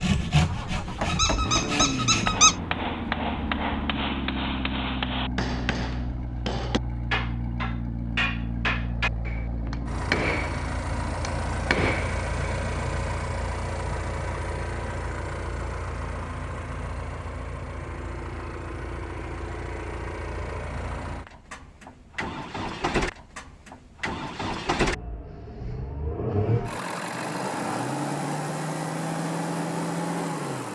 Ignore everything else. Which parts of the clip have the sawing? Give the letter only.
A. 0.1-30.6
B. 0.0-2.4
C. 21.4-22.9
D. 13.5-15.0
B.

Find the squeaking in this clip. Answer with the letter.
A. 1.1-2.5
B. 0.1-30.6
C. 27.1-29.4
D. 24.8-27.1
A.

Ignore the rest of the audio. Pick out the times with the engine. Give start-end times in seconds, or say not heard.
0.1-30.6.